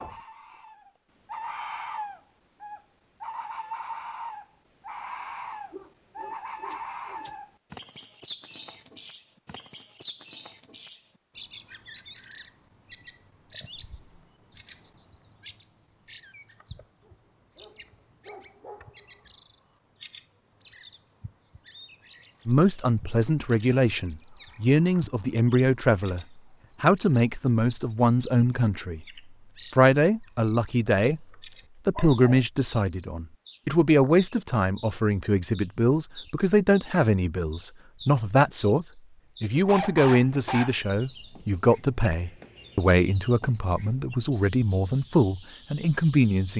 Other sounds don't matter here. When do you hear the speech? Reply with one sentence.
The speech can be heard from 22.4 to 29.1 s, from 29.7 to 31.2 s and from 31.9 to 46.5 s.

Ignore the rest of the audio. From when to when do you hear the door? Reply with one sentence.
You can't hear the door here.